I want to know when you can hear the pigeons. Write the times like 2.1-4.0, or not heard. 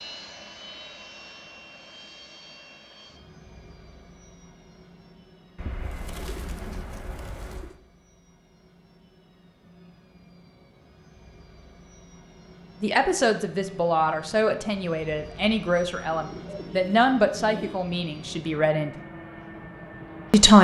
5.5-7.8, 16.1-17.8.